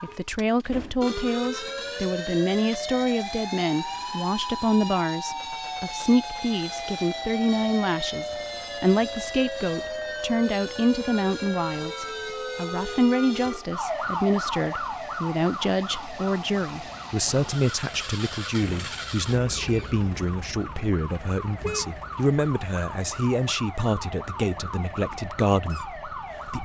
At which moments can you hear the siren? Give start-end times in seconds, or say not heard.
0.0-26.6.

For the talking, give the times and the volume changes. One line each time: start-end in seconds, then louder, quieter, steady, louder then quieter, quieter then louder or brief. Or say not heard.
0.0-26.6 steady.